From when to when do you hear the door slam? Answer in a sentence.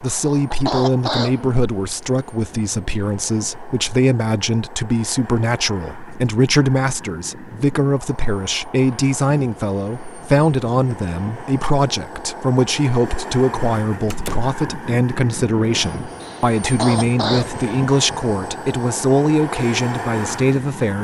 The door slam can be heard from 14.1 to 14.5 s.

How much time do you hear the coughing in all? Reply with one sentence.
You can hear the coughing for 3 seconds altogether.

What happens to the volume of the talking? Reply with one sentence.
The volume of the talking stays about the same.